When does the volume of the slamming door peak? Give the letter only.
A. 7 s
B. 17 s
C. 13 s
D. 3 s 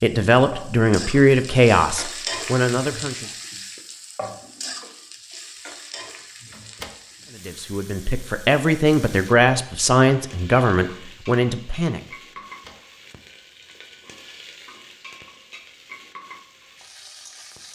A.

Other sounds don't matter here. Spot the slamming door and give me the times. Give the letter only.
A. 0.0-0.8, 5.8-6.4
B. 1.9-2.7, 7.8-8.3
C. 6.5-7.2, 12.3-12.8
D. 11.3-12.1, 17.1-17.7
C.